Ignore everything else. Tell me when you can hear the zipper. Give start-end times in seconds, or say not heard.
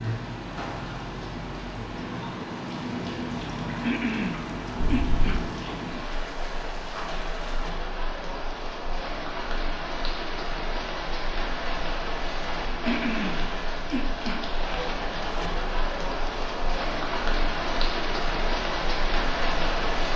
4.8-5.4.